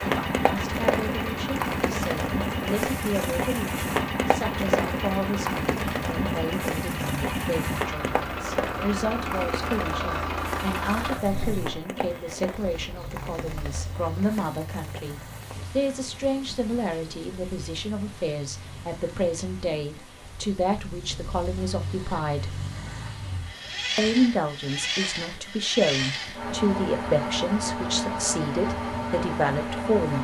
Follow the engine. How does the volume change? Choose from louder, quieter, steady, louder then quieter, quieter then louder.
quieter then louder.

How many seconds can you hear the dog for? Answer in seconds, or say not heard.
not heard.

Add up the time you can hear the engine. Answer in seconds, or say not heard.
30 s.